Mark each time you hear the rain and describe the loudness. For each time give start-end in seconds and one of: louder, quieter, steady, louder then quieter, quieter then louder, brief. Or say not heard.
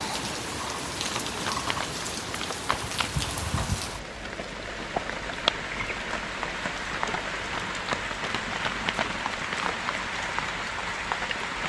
0.0-11.6 steady.